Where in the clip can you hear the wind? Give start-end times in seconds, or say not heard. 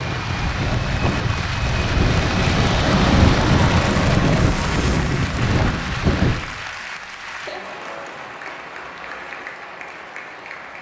0.0-6.4.